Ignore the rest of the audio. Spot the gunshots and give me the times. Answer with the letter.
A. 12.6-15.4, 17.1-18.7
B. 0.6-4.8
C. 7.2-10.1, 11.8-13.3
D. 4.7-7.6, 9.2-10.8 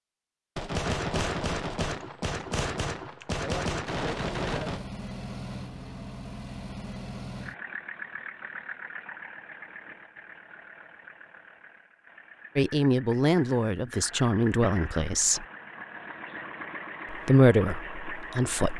B.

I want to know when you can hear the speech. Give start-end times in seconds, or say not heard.
12.6-15.4, 17.1-18.7.